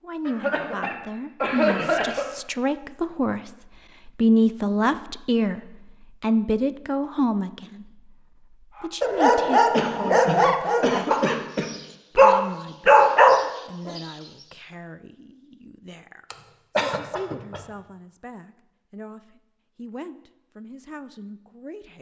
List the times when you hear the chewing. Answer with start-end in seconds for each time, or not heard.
not heard.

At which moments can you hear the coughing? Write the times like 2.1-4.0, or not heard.
0.2-2.3, 9.7-11.7, 16.3-17.6.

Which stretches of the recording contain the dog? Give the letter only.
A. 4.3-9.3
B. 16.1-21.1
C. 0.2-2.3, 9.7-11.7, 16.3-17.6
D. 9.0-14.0
D.